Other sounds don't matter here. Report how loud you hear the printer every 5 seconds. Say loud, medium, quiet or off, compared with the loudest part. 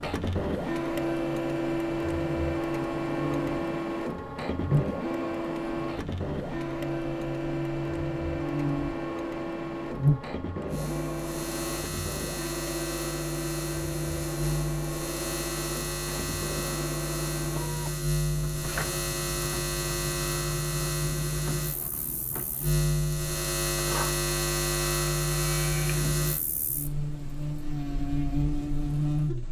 loud, loud, medium, medium, medium, quiet.